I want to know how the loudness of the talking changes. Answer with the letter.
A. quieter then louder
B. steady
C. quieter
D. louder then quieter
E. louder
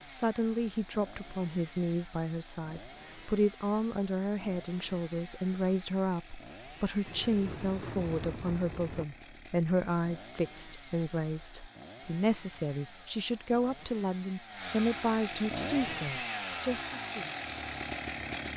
B.